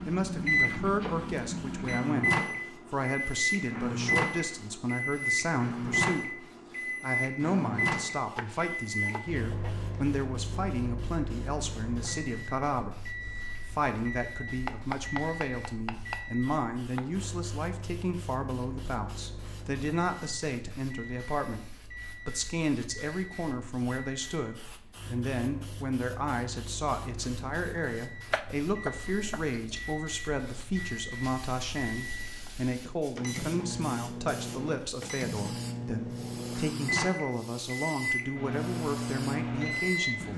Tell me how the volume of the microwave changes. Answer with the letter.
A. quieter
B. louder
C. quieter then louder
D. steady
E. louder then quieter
C.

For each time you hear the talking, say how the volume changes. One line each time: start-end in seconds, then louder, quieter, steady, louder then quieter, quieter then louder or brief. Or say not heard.
0.1-40.3 steady.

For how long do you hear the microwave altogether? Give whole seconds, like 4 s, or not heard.
40 s.